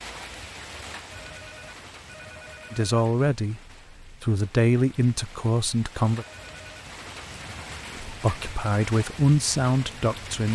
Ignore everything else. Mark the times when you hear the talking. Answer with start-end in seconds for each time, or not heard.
2.7-6.2, 8.0-10.5.